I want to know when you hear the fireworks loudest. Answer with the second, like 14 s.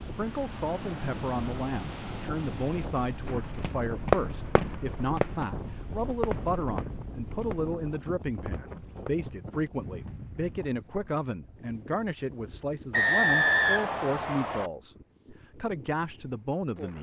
4 s.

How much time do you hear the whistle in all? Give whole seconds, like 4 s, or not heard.
2 s.